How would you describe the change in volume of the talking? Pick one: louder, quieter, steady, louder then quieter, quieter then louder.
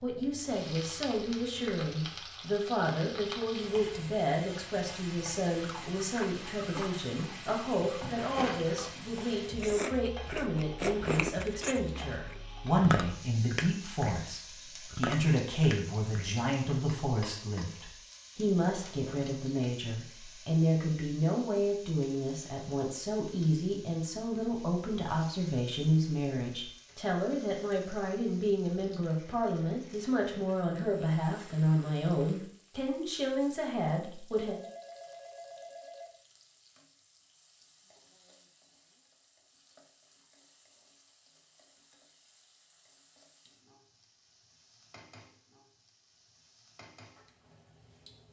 steady.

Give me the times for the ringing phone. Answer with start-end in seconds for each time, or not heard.
34.3-36.1.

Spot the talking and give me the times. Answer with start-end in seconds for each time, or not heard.
0.0-34.5.